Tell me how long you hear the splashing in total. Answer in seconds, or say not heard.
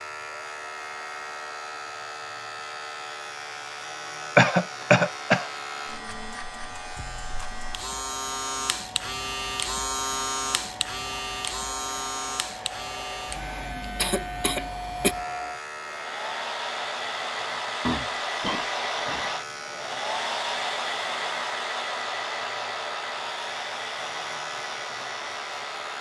not heard.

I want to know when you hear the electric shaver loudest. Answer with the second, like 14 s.
10 s.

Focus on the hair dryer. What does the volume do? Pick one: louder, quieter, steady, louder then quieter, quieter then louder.
louder.